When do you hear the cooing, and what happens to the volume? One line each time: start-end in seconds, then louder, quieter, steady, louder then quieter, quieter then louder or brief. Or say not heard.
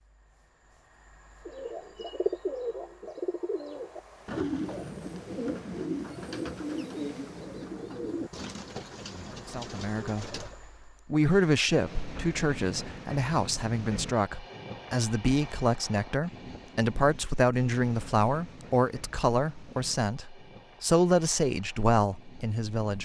1.4-10.6 quieter.